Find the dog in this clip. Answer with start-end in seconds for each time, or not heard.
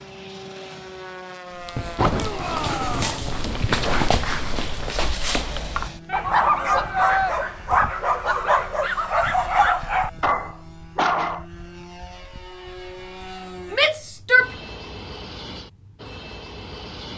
1.6-11.4.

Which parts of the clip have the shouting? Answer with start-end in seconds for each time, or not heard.
2.1-3.1, 6.0-7.3, 13.7-14.5.